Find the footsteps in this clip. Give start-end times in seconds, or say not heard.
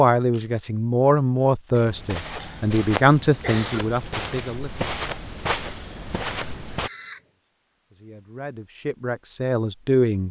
1.7-6.9.